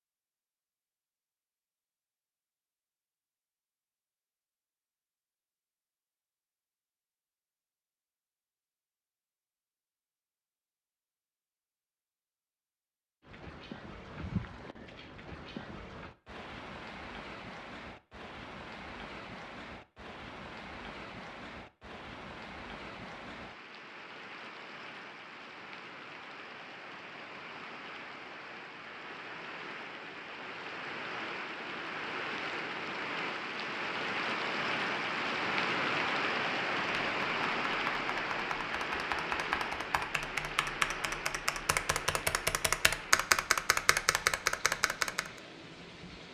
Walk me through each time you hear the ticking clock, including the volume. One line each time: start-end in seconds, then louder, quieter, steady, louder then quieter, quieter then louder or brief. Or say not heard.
not heard.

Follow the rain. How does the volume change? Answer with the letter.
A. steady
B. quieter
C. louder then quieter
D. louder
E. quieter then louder
C.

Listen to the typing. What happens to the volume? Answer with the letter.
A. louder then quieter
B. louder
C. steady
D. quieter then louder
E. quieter
B.